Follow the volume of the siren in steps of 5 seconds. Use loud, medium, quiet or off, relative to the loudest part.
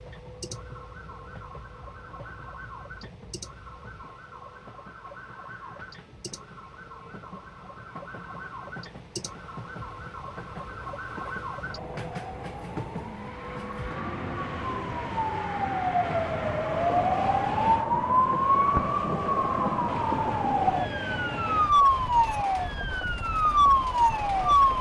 quiet, quiet, quiet, loud, loud.